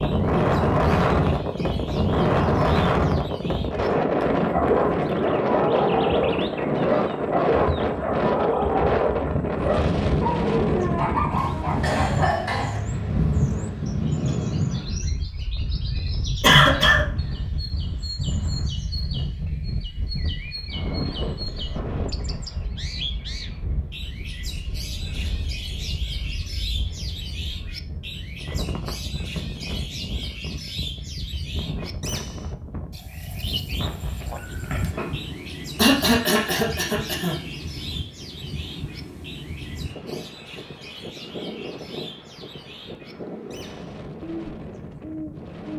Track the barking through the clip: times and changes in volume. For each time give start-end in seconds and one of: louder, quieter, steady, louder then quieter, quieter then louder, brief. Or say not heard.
4.5-12.4 steady.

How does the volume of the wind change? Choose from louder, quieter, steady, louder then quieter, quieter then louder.
quieter.